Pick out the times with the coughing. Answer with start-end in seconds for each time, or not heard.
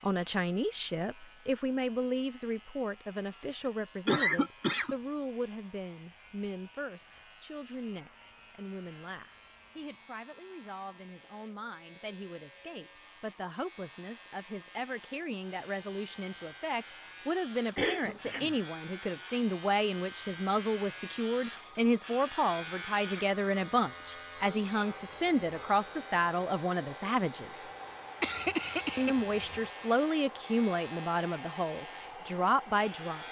3.6-5.0, 17.8-18.6, 28.2-29.6.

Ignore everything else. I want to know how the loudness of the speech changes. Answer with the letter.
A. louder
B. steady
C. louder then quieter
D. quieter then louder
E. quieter
D.